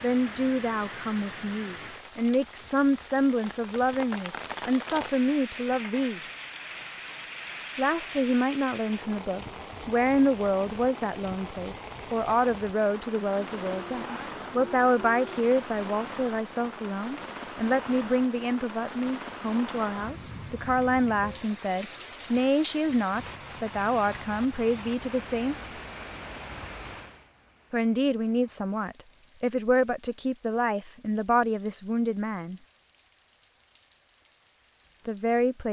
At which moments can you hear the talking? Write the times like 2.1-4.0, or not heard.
0.0-6.2, 7.8-25.7, 27.7-32.6, 35.0-35.6.